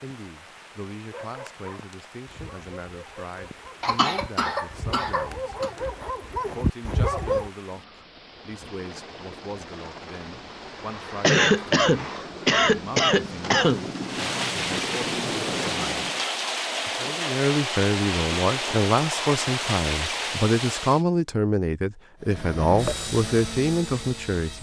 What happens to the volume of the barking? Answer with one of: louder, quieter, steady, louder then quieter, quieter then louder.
louder.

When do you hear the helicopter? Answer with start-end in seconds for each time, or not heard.
8.3-16.2, 22.2-24.5.